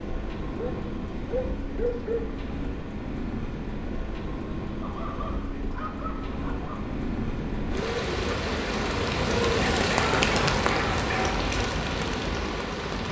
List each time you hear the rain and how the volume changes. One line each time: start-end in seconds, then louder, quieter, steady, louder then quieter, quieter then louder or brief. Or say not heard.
0.0-13.0 louder.